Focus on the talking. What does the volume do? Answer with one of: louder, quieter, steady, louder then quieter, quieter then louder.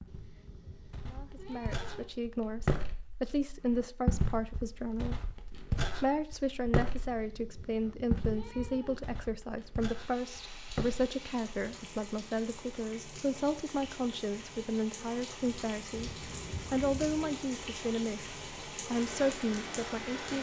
steady.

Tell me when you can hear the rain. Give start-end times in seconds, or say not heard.
9.8-20.3.